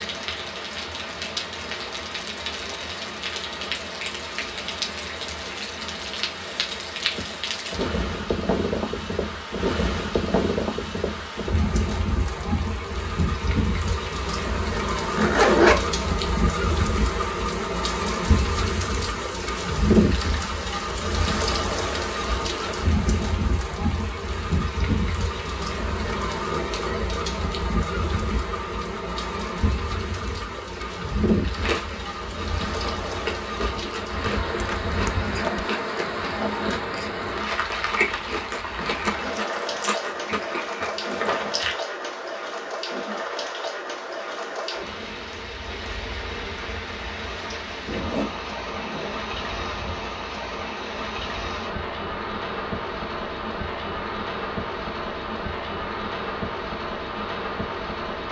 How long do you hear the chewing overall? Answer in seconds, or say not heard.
10 s.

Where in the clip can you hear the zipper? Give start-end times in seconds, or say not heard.
15.1-15.8, 34.5-35.7, 47.9-49.1.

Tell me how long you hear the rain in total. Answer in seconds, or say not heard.
58 s.